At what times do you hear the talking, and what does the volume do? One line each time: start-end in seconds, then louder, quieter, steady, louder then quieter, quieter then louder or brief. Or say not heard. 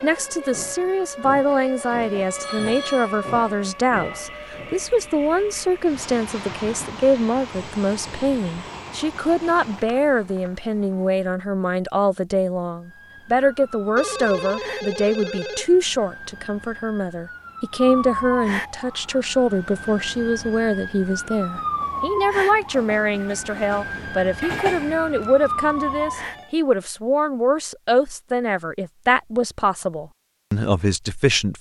0.0-31.5 steady.